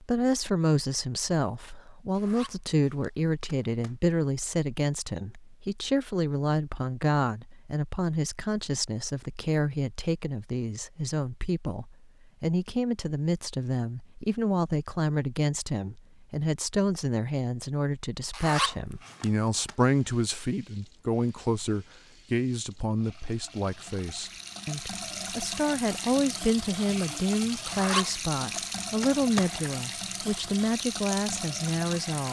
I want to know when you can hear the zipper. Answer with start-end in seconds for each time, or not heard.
2.1-4.0, 18.3-19.8, 27.6-29.7.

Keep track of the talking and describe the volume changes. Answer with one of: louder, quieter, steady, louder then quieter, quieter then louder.
steady.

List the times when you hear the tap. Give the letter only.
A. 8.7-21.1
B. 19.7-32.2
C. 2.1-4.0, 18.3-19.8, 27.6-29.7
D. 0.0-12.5
B.